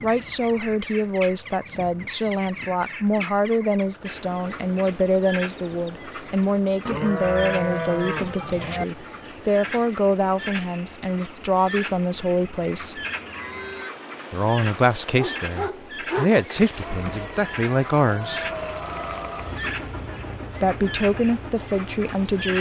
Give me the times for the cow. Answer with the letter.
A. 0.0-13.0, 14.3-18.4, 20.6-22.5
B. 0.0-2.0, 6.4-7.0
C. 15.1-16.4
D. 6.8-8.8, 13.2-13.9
D.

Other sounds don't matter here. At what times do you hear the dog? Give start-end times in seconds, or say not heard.
15.1-16.4.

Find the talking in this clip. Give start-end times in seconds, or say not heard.
0.0-13.0, 14.3-18.4, 20.6-22.5.